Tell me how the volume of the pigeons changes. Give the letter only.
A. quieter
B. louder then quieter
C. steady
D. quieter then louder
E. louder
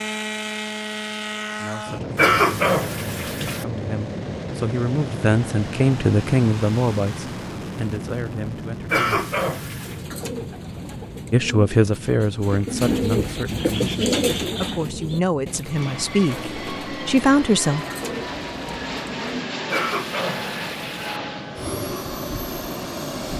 B.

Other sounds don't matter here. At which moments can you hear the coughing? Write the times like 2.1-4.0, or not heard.
2.1-3.6, 8.9-10.0, 19.7-21.2.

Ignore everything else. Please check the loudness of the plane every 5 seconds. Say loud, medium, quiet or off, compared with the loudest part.
loud, loud, medium, loud, loud.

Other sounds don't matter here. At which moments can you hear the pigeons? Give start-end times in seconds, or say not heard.
9.8-19.4.